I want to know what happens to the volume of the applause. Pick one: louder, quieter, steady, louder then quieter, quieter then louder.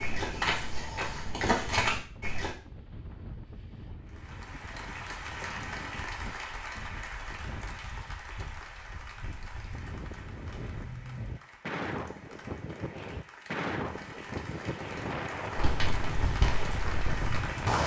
quieter then louder.